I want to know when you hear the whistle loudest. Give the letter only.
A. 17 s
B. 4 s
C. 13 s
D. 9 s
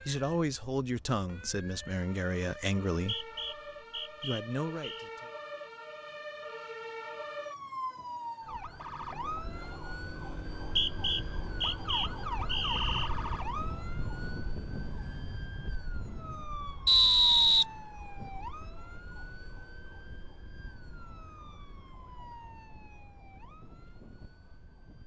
A.